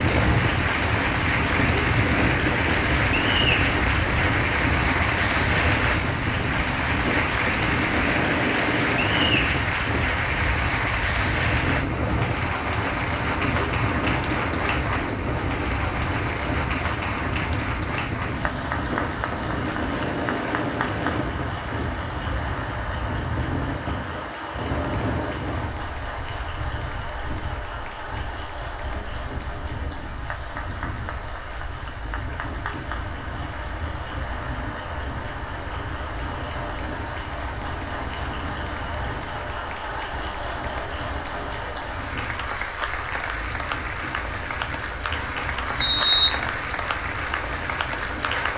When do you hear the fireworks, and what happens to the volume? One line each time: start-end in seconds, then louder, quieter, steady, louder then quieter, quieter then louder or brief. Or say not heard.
not heard.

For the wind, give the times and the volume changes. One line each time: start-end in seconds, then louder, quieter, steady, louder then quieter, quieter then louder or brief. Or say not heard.
0.0-48.5 quieter.